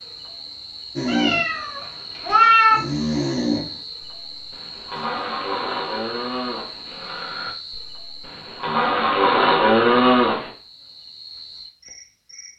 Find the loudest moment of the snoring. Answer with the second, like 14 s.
10 s.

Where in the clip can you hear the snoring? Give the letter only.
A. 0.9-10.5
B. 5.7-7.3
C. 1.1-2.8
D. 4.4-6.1
A.